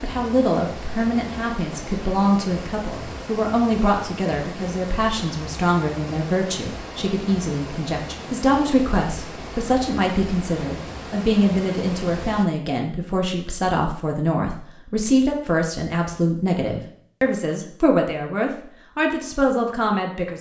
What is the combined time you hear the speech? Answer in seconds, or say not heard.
20 s.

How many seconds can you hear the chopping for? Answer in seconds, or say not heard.
not heard.